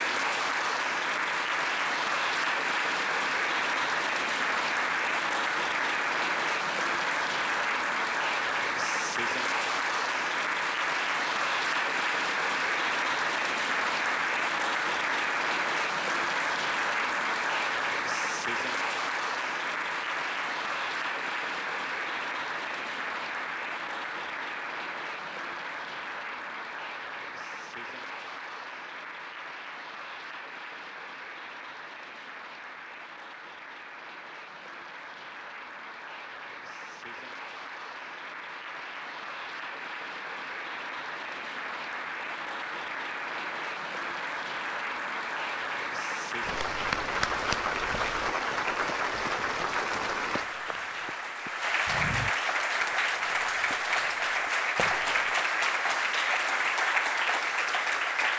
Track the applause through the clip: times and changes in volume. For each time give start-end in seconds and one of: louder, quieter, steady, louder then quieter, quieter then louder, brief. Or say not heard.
0.0-58.3 quieter then louder.